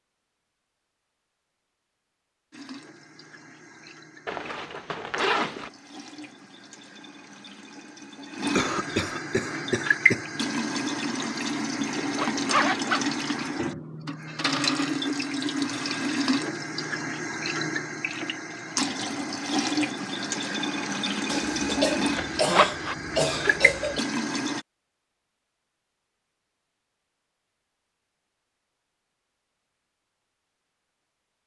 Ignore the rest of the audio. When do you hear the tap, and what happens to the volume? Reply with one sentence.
You can hear the tap from 2.5 to 24.6 s, getting louder.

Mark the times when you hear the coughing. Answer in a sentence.
The coughing can be heard from 8.6 to 10.2 s and from 21.2 to 24.0 s.